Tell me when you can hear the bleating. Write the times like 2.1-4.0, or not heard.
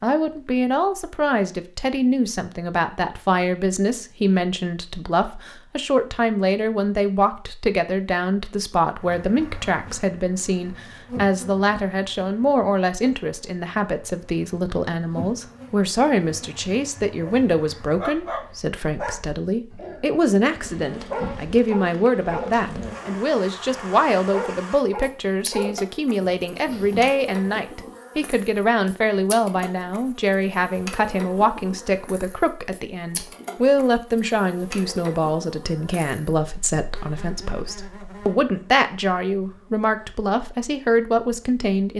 not heard.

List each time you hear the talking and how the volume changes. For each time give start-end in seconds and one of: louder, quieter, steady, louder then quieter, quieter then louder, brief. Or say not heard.
0.0-41.9 steady.